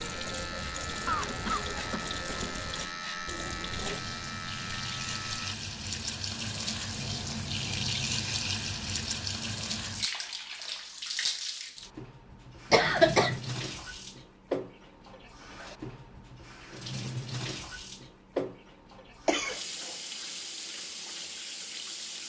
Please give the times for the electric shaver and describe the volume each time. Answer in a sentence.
You can hear the electric shaver from 0.0 to 5.5 s, at a steady volume.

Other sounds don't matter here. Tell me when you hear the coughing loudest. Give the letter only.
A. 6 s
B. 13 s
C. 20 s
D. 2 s
B.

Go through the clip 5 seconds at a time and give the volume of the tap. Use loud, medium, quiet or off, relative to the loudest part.
medium, loud, loud, medium, medium.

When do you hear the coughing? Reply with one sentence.
You can hear the coughing from 1.1 to 2.1 s, from 12.7 to 13.4 s and from 19.2 to 19.9 s.